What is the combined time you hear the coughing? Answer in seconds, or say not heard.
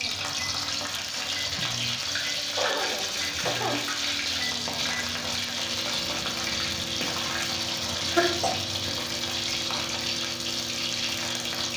2 s.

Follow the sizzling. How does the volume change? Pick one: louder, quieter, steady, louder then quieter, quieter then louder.
steady.